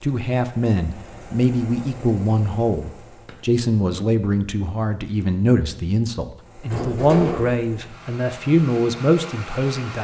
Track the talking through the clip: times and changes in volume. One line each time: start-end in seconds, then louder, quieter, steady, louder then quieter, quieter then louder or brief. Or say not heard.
0.0-9.9 steady.